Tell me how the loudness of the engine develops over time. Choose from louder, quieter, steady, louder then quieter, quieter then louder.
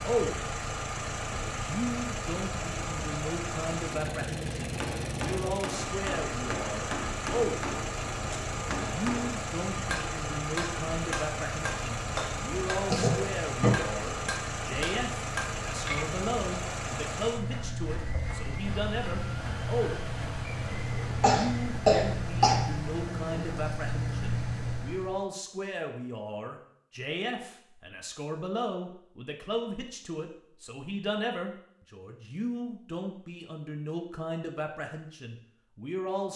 steady.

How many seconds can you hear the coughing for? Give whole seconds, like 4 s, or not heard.
3 s.